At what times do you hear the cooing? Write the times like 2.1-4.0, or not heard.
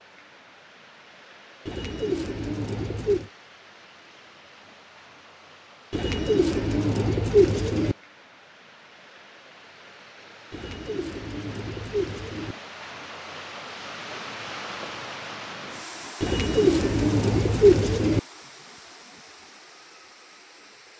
1.6-3.3, 5.9-8.0, 10.5-12.6, 16.2-18.2.